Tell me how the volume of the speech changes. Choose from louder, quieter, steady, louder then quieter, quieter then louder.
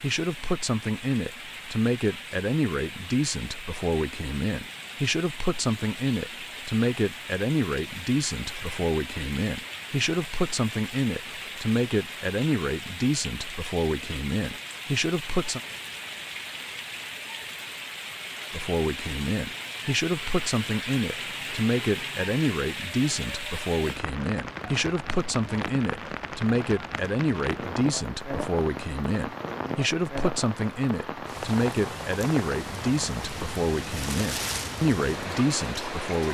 steady.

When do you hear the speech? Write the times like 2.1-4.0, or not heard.
0.0-15.6, 18.5-36.2.